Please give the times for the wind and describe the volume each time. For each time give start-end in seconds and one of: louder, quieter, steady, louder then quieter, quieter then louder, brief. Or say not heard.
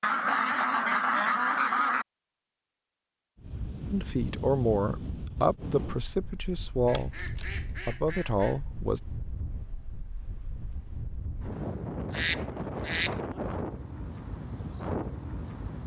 3.4-15.8 quieter then louder.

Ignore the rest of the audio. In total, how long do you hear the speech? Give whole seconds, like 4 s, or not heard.
5 s.